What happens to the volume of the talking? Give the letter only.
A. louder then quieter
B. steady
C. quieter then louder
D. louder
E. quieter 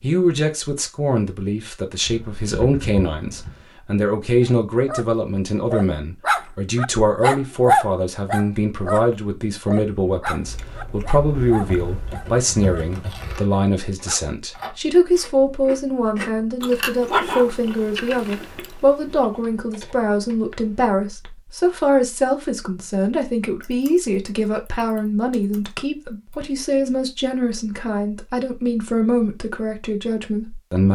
B.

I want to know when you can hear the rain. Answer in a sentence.
The rain can't be heard in this clip.